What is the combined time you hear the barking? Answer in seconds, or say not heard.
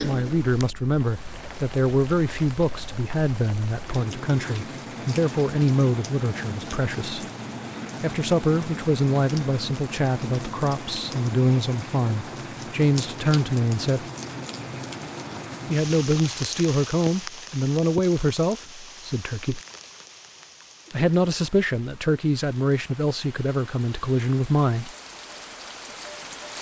not heard.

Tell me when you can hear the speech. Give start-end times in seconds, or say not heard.
0.0-7.2, 8.0-14.1, 15.7-19.6, 20.9-24.9.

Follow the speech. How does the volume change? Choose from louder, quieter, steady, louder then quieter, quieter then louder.
steady.